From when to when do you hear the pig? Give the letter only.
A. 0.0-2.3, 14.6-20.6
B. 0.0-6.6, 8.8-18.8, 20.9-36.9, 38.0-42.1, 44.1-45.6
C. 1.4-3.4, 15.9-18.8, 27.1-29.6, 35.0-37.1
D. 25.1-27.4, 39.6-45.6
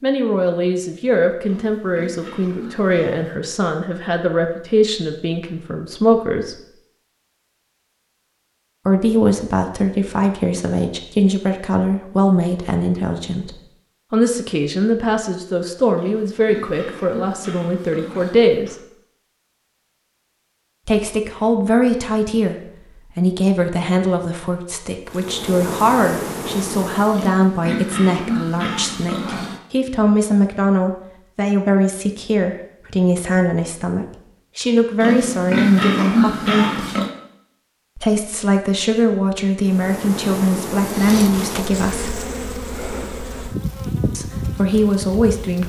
C.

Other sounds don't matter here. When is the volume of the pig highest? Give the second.
36 s.